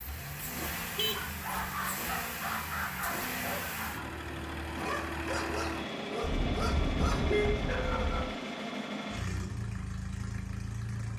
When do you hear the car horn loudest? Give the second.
7 s.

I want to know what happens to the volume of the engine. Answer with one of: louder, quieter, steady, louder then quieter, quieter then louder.
steady.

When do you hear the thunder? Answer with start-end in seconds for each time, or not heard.
6.3-8.3.